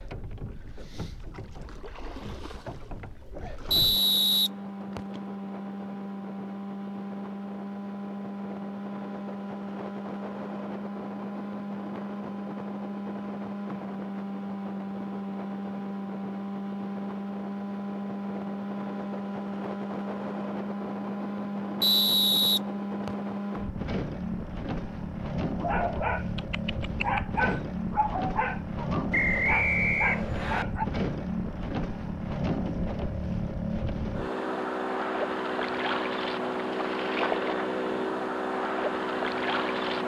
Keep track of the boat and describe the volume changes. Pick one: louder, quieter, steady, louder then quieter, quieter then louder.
louder.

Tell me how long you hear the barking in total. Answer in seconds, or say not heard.
5 s.